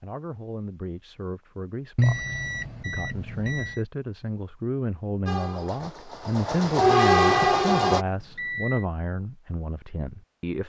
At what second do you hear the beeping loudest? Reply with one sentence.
The volume of the beeping peaks at 2 seconds.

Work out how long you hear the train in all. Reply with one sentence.
You can hear the train for 3 seconds altogether.